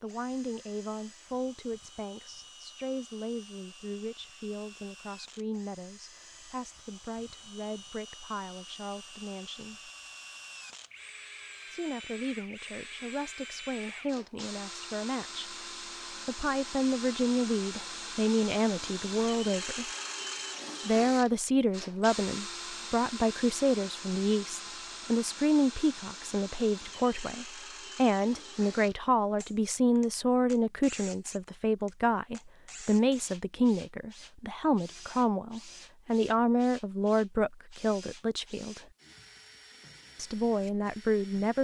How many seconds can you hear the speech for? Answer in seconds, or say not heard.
37 s.